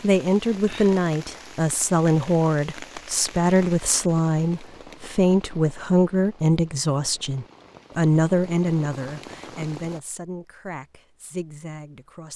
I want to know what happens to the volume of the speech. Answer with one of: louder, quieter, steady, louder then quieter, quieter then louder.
quieter.